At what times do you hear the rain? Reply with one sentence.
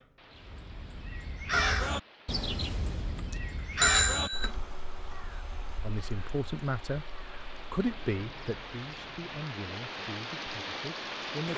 You can hear the rain from 0.0 to 11.5 s.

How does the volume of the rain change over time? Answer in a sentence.
The loudness of the rain goes up.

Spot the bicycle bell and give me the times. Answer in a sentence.
The bicycle bell can be heard from 2.6 to 4.5 s.